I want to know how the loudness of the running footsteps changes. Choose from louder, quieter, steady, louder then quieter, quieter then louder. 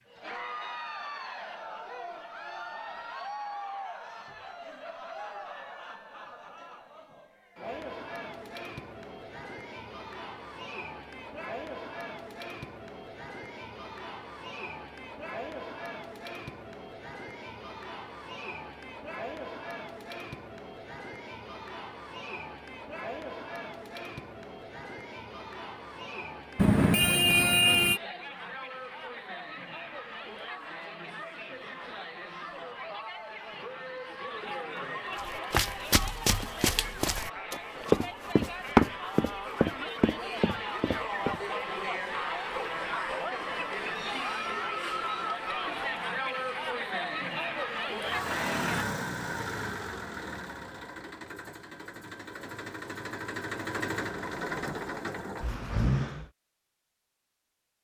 louder then quieter.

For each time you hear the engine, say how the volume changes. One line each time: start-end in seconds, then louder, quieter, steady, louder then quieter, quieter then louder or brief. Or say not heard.
48.0-56.3 quieter then louder.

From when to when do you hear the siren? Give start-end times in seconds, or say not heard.
not heard.